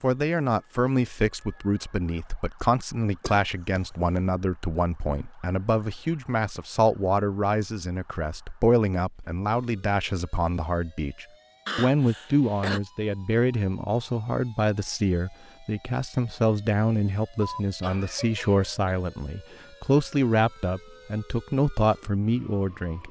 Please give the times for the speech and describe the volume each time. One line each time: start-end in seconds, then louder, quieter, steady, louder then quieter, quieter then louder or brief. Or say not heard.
0.0-23.0 steady.